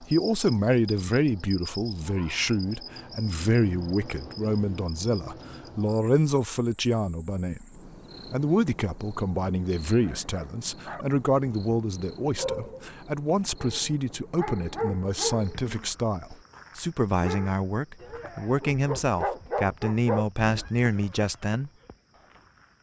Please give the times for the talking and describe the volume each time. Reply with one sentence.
You can hear the talking from 0.0 to 21.7 s, at a steady volume.